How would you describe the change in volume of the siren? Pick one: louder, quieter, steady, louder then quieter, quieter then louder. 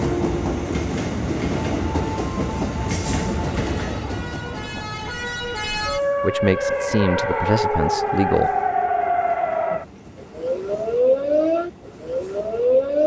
louder.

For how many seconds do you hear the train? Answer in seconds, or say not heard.
13 s.